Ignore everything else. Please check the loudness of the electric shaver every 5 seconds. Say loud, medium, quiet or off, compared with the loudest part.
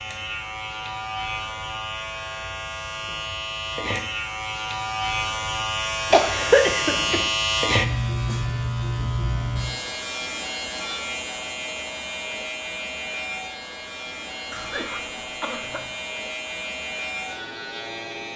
medium, loud, medium, medium.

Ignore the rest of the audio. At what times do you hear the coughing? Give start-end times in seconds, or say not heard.
6.1-7.2, 14.5-15.9.